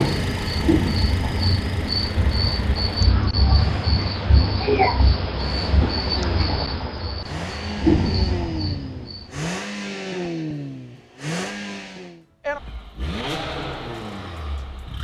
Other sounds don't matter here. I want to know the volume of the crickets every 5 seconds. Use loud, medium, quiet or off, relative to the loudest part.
loud, loud, off.